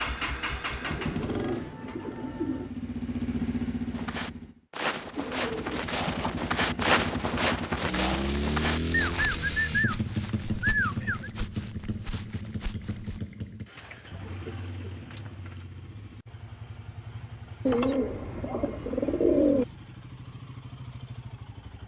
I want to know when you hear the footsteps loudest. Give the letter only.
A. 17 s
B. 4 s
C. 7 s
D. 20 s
C.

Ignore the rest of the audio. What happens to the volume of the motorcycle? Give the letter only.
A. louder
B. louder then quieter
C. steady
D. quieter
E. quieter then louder
D.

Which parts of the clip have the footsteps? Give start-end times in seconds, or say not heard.
3.9-13.2.